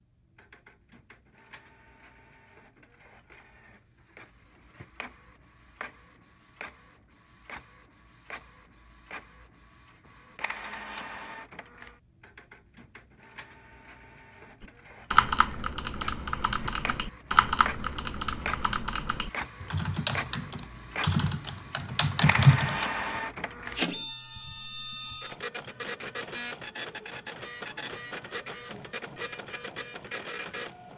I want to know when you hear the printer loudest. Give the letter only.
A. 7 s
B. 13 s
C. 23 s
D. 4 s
C.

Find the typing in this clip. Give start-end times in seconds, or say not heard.
14.6-22.9.